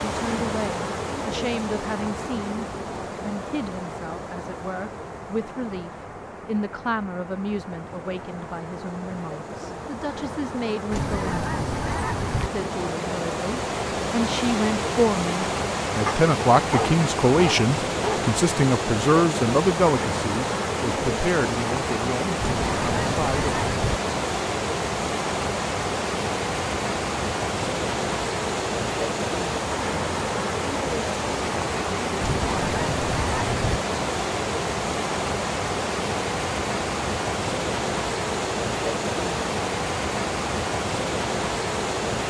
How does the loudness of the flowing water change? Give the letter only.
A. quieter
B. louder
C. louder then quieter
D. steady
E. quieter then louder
B.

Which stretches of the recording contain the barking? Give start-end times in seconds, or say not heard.
16.1-18.2.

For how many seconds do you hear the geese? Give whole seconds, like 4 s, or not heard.
5 s.